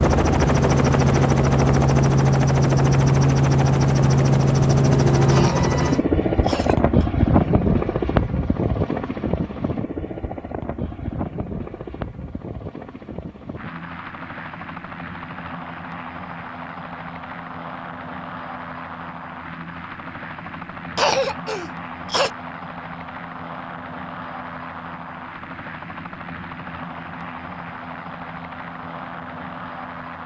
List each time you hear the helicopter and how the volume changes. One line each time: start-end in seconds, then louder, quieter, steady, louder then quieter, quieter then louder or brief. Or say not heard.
0.0-30.2 quieter.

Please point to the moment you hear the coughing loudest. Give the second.
21 s.